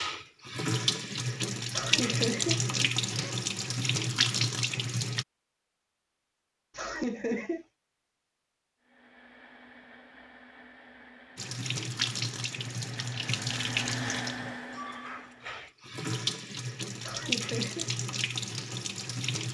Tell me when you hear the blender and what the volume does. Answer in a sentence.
The blender can be heard from 8.8 to 15.6 s, getting louder.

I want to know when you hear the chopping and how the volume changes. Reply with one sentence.
The chopping can't be heard in this clip.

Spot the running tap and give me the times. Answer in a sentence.
You can hear the running tap from 0.0 to 5.2 s and from 11.3 to 19.5 s.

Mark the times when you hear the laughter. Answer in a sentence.
The laughter can be heard from 1.7 to 3.4 s, from 6.8 to 7.7 s and from 17.0 to 17.9 s.